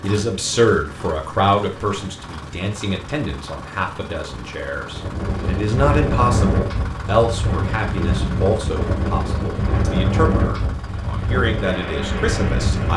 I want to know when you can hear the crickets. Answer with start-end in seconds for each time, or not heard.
not heard.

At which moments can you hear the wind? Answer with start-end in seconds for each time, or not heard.
4.9-12.9.